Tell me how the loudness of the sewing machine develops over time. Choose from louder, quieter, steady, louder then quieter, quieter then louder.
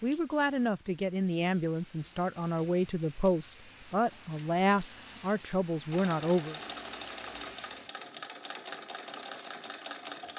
steady.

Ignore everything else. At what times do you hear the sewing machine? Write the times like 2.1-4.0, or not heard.
5.9-10.3.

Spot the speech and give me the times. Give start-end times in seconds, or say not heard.
0.0-6.5.